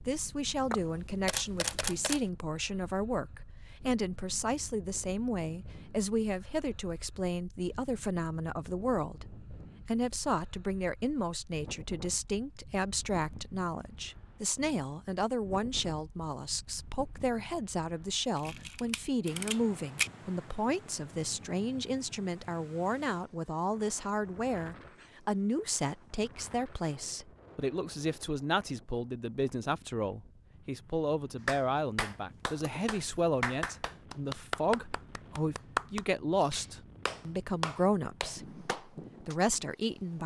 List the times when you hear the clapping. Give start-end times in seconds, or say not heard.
31.4-39.4.